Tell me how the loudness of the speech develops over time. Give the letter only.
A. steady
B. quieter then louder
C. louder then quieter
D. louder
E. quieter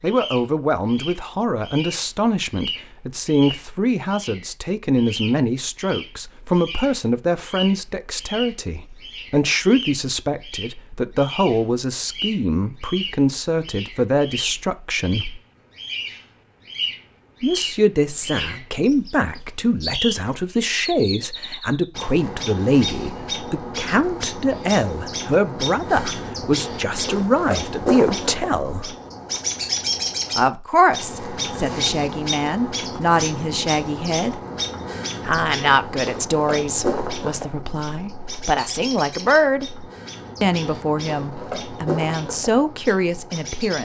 A.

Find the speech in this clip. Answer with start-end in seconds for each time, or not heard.
0.0-15.4, 17.4-28.9, 30.4-34.4, 35.2-43.8.